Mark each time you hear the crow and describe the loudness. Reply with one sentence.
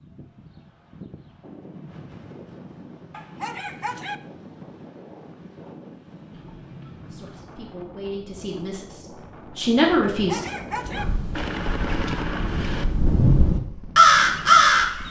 The crow can be heard from 10.9 to 15.0 s, getting louder.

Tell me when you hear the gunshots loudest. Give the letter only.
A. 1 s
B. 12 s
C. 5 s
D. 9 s
B.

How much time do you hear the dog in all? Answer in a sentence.
You can hear the dog for 2 seconds altogether.